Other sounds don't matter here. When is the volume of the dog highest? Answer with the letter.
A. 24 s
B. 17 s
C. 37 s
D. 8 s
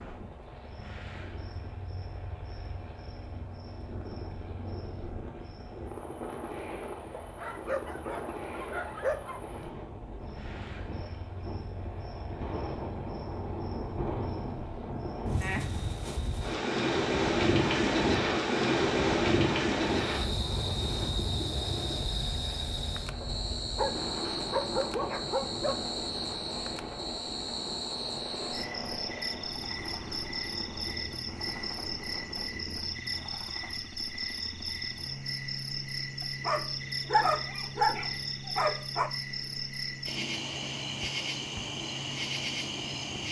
C.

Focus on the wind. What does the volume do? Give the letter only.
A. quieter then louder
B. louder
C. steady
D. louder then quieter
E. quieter
D.